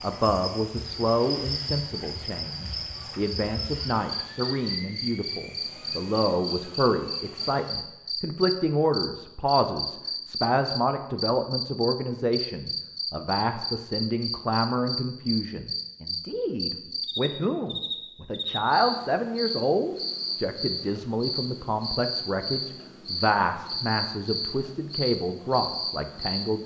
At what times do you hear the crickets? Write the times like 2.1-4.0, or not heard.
0.0-26.6.